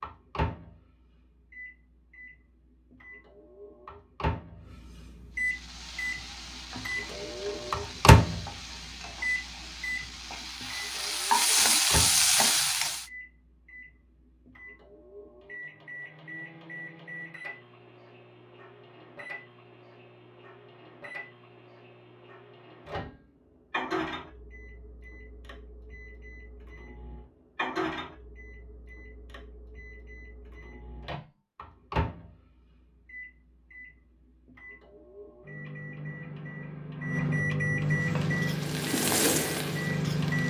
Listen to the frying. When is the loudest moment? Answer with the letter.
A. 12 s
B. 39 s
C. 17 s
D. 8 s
A.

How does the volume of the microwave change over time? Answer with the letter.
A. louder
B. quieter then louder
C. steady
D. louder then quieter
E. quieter
B.